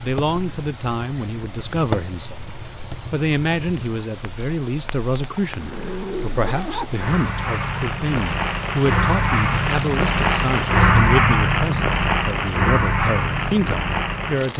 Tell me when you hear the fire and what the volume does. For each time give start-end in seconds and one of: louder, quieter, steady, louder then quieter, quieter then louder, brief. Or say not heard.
0.0-14.5 quieter then louder.